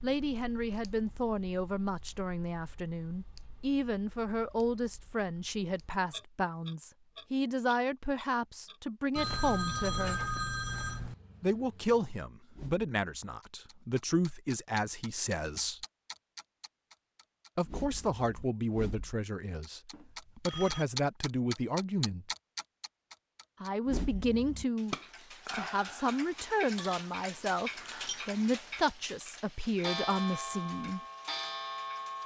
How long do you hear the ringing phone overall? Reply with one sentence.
The ringing phone can be heard for 3 seconds in total.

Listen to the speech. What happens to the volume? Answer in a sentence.
The volume of the speech stays about the same.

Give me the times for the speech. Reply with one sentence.
The speech can be heard from 0.0 to 10.2 s, from 11.4 to 15.8 s, from 17.6 to 22.3 s and from 23.6 to 31.0 s.